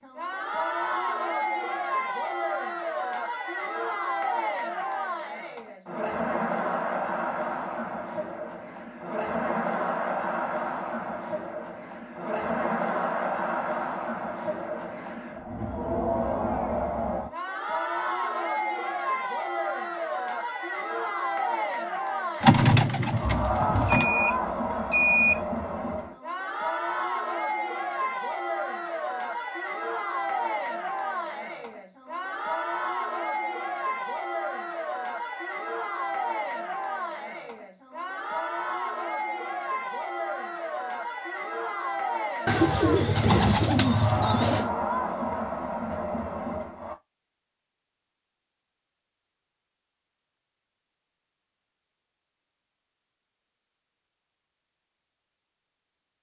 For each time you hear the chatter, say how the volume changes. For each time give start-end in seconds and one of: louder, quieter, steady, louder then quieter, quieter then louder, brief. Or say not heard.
0.0-47.0 steady.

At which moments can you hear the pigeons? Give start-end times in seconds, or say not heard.
22.4-24.1, 42.5-44.7.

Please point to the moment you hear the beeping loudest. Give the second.
25 s.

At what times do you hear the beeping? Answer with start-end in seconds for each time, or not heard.
23.9-25.4.